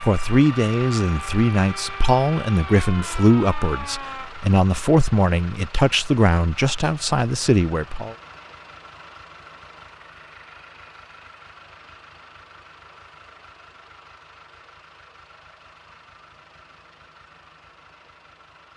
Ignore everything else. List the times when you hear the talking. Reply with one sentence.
You can hear the talking from 0.0 to 8.2 s.